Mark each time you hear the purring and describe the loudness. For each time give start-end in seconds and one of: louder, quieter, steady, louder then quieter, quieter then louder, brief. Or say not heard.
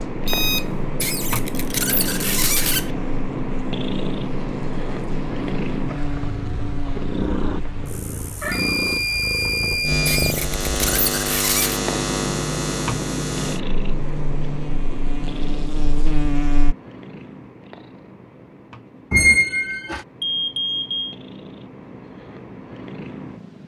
0.0-23.6 quieter.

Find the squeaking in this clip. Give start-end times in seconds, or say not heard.
1.0-2.9, 10.1-11.8, 19.1-20.1.